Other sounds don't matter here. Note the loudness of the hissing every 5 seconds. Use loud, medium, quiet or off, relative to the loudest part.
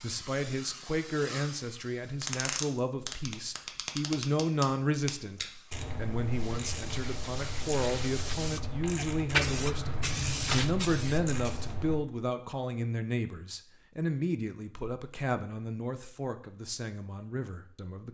medium, loud, loud, off.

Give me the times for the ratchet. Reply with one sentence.
The ratchet can be heard from 2.2 to 12.0 s.